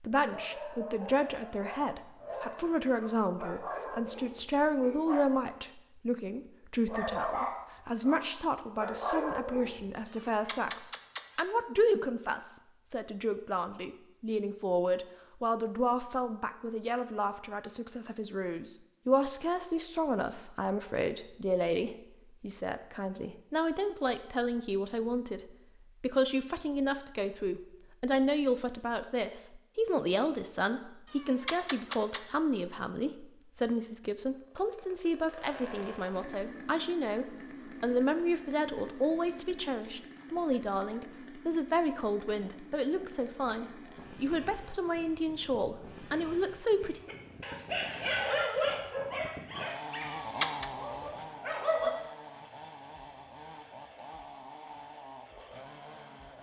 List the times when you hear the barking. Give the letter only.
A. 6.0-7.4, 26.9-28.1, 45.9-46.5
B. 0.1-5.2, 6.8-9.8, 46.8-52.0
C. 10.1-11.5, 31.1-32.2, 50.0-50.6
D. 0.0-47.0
B.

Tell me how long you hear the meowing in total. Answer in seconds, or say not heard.
3 s.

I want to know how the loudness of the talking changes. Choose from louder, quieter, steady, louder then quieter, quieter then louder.
steady.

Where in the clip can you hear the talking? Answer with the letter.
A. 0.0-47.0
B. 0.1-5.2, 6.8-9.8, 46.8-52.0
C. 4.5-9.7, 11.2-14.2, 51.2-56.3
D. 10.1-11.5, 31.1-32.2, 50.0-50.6
A.